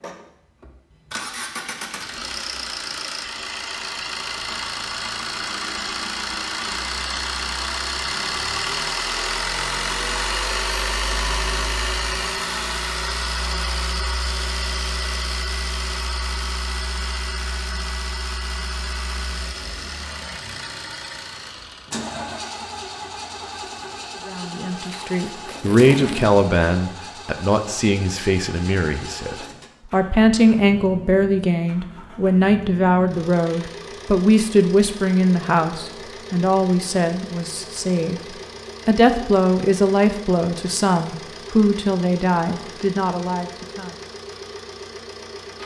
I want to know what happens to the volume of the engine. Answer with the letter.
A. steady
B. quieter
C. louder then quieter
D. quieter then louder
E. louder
B.